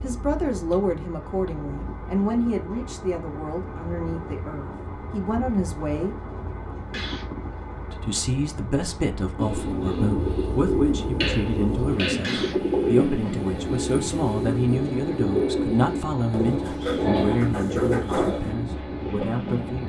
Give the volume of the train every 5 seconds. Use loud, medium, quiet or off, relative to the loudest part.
medium, medium, loud, loud.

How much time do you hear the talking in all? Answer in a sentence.
The talking can be heard for 18 seconds in total.